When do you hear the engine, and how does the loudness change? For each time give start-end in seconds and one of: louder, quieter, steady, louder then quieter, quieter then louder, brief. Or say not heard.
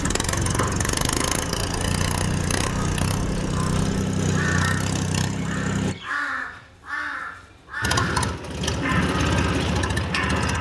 0.0-6.0 steady
7.8-10.5 brief.